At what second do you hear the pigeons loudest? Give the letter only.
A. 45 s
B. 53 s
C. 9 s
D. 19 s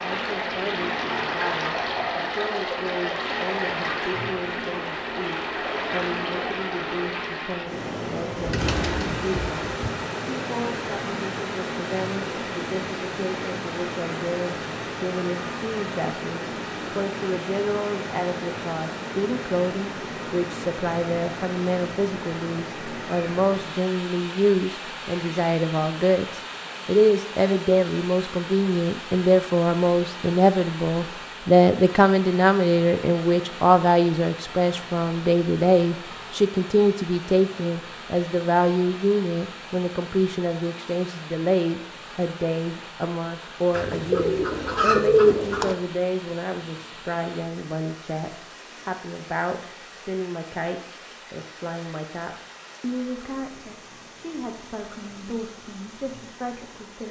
A.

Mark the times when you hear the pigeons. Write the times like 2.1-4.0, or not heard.
8.3-9.9, 43.7-45.8.